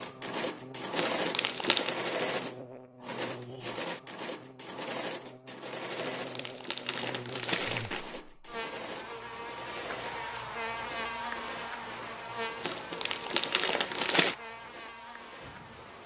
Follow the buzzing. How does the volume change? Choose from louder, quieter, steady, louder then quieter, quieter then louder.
louder then quieter.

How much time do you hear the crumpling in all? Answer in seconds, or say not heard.
5 s.